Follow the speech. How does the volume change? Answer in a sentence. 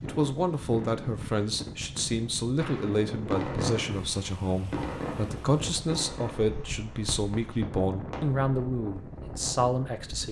The loudness of the speech stays about the same.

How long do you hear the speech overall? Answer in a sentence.
The speech can be heard for 10 seconds in total.